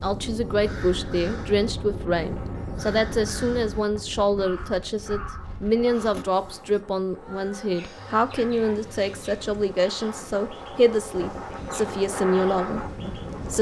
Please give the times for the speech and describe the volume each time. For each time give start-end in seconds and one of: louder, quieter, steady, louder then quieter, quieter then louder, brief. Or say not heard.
0.0-13.5 steady.